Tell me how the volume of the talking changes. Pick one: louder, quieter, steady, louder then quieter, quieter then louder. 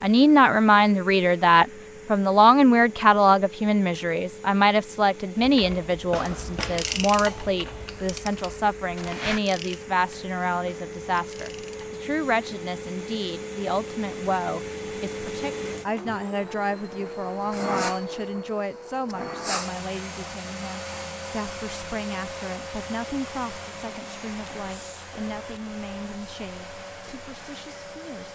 quieter.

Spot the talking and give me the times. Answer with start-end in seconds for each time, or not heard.
0.0-28.2.